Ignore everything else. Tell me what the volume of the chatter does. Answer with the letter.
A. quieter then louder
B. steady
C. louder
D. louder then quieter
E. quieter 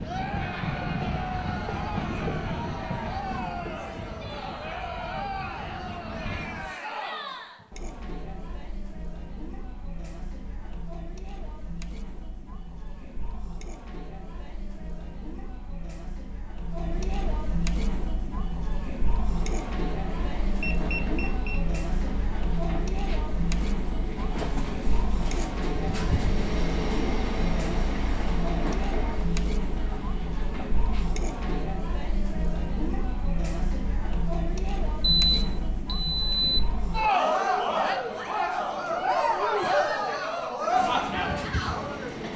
A.